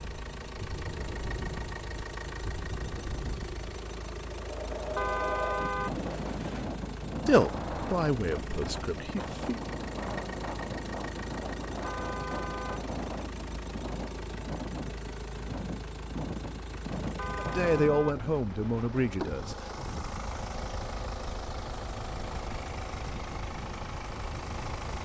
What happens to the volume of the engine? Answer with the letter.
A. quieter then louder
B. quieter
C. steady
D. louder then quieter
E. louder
C.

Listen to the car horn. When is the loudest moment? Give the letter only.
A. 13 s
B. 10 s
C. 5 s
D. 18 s
C.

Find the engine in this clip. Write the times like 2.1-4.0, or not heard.
0.0-25.0.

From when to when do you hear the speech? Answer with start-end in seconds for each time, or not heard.
7.2-9.6, 17.4-19.6.